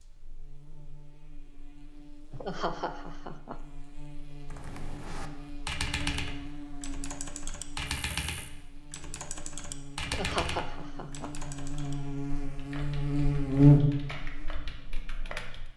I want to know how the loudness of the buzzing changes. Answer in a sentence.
The volume of the buzzing goes up.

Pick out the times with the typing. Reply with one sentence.
The typing can be heard from 4.5 to 15.7 s.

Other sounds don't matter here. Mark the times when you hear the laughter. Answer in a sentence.
You can hear the laughter from 2.3 to 3.6 s and from 10.1 to 11.3 s.